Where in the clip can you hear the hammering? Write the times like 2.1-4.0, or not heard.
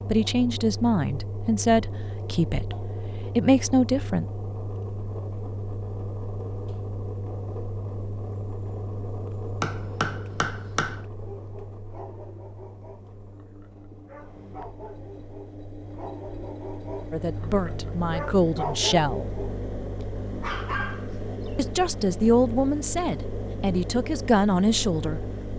9.6-11.1.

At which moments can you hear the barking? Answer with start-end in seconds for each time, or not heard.
11.2-21.6.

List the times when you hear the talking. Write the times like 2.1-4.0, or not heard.
0.1-4.2, 17.1-19.2, 21.6-25.2.